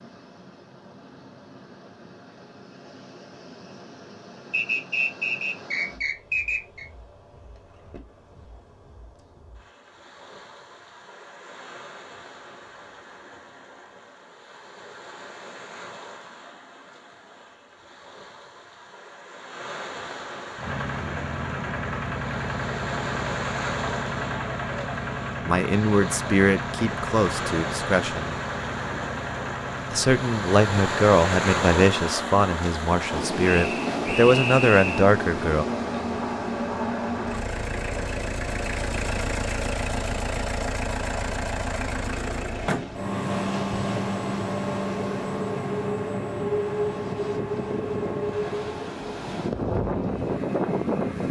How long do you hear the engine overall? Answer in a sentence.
You can hear the engine for 31 seconds altogether.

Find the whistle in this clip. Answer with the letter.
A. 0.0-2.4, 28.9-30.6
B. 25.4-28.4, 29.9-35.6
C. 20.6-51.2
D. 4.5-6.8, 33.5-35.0
D.